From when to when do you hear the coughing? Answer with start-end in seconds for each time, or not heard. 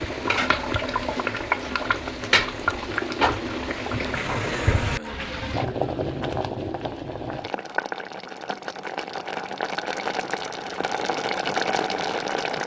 4.5-5.3.